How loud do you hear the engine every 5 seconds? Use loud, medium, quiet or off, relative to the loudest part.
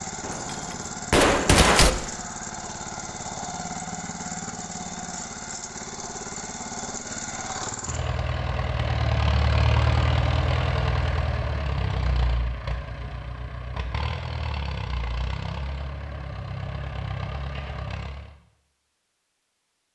medium, loud, loud, medium.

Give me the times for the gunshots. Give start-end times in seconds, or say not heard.
0.2-1.9.